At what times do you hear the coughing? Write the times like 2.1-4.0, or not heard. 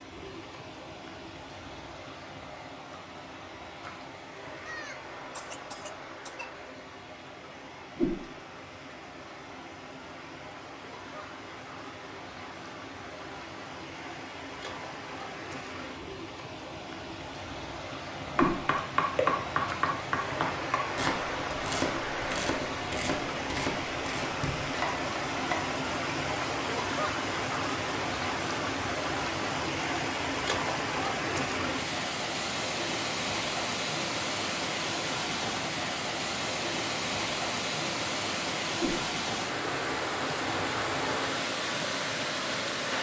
4.7-6.5.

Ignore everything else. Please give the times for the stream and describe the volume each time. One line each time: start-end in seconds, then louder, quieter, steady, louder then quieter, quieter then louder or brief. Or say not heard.
0.0-42.9 louder.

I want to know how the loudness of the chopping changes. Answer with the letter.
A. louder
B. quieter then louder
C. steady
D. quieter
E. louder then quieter
D.